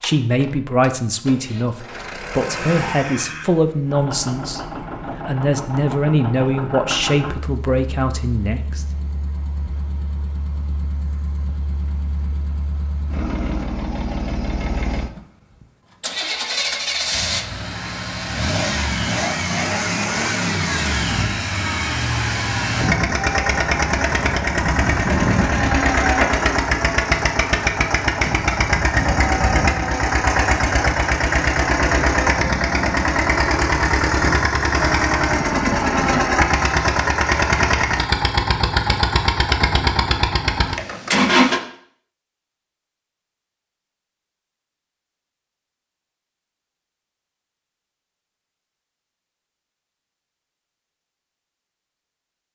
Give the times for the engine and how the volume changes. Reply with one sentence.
The engine can be heard from 0.0 to 41.6 s, getting louder.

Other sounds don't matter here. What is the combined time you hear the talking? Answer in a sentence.
You can hear the talking for 9 seconds altogether.